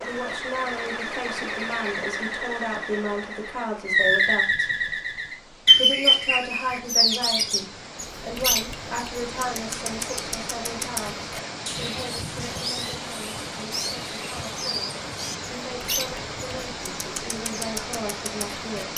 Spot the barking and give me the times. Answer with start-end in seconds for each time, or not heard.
not heard.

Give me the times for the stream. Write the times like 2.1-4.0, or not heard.
0.0-18.9.